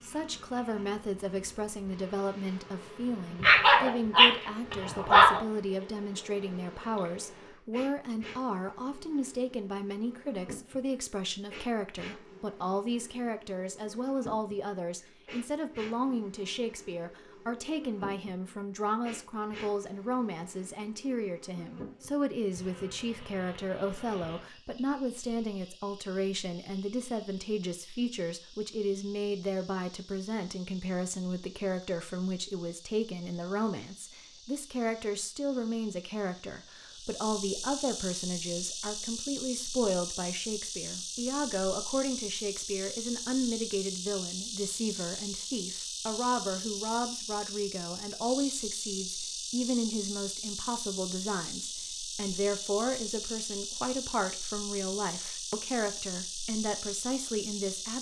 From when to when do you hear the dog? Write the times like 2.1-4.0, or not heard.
3.4-5.4.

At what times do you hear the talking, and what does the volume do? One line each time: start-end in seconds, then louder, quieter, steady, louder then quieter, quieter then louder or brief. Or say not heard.
0.0-57.9 steady.